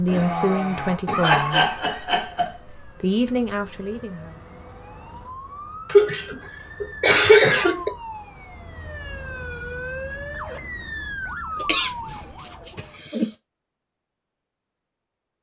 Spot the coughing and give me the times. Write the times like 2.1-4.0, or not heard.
0.1-2.5, 5.8-7.9, 11.6-13.3.